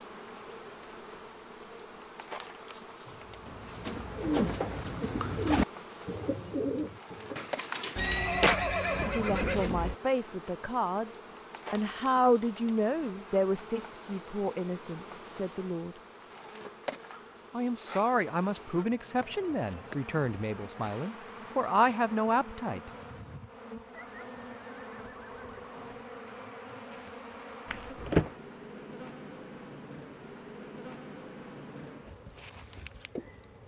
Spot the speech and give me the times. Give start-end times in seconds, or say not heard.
9.1-11.1, 11.7-15.9, 17.5-22.9.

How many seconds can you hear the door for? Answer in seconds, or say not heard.
2 s.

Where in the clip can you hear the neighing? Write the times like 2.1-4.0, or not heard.
8.0-9.9, 23.9-25.9.